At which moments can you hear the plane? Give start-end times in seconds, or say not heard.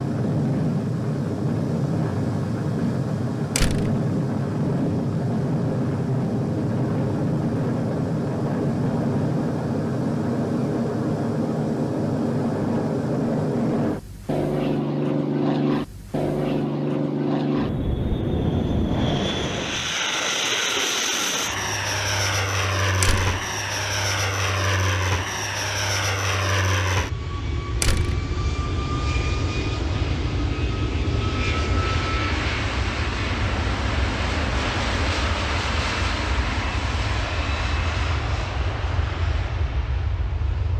0.0-40.7.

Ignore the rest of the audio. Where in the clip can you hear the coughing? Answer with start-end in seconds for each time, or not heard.
not heard.